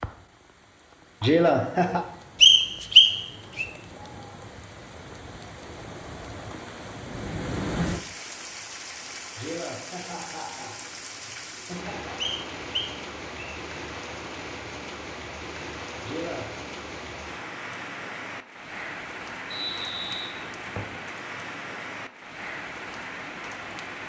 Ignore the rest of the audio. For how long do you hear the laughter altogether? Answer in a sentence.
The laughter can be heard for 4 seconds in total.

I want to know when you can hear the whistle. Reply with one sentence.
You can hear the whistle from 2.4 to 3.6 s, from 12.2 to 13.6 s and from 19.5 to 21.0 s.